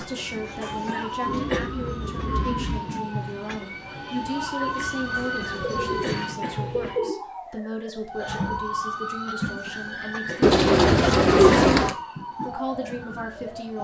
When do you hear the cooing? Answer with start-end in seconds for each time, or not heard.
1.2-2.9, 4.7-7.2, 10.4-11.9.